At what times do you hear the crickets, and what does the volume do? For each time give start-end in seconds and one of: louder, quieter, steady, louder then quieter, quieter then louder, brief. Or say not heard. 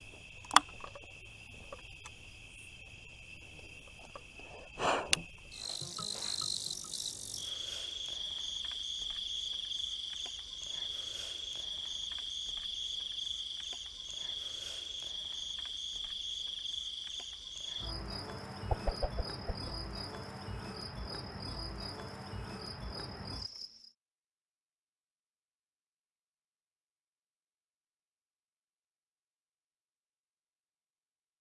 0.0-23.9 quieter.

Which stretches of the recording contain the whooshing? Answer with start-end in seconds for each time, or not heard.
18.7-19.8.